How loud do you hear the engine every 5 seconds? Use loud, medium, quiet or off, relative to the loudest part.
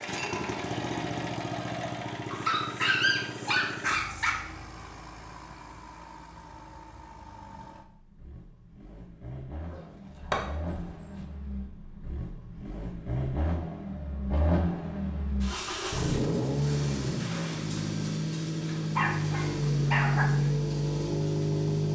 medium, quiet, medium, loud, loud.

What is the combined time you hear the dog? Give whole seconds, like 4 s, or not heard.
5 s.